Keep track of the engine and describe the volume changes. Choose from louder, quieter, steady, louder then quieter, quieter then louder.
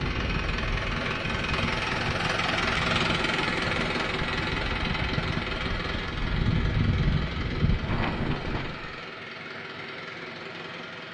quieter.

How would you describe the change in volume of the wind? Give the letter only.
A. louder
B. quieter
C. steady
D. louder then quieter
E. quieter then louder
A.